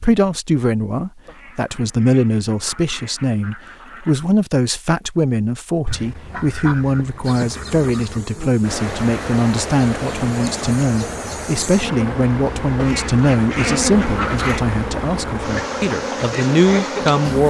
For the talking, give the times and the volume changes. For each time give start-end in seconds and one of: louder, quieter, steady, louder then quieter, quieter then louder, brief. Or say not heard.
0.0-17.4 steady.